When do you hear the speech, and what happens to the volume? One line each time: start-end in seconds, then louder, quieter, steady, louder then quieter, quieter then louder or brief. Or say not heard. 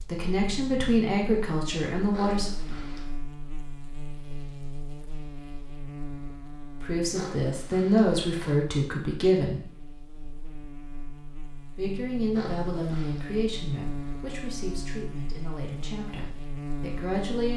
0.1-2.5 brief
6.8-9.6 brief
11.8-17.5 quieter.